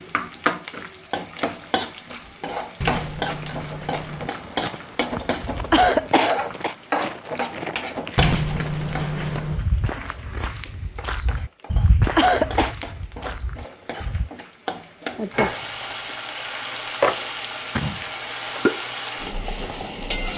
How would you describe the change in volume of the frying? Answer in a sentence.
The volume of the frying goes down, then up.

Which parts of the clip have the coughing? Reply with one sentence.
You can hear the coughing from 5.7 to 6.8 s and from 12.2 to 12.8 s.